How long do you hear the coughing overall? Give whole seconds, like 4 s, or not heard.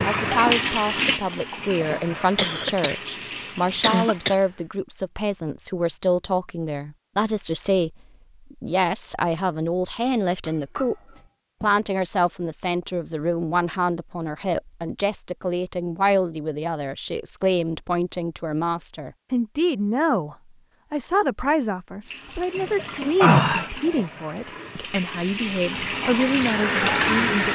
2 s.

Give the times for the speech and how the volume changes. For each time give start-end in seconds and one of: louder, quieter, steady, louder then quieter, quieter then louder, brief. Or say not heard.
0.1-10.9 steady
11.6-27.5 steady.